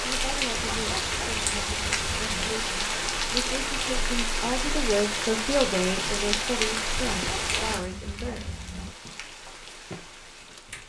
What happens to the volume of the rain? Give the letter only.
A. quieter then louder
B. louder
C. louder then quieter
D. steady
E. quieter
E.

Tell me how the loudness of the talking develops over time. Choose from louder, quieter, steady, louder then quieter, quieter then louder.
louder then quieter.